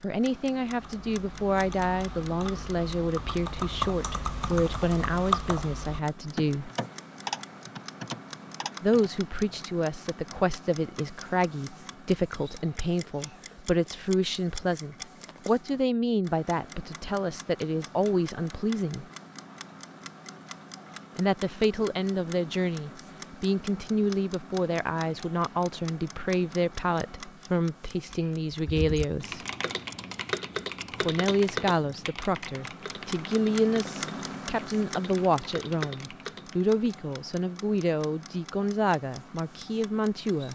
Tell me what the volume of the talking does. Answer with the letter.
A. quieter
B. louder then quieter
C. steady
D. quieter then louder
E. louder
C.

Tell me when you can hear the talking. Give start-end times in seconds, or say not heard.
0.0-6.7, 8.8-19.1, 21.1-29.4, 31.0-40.4.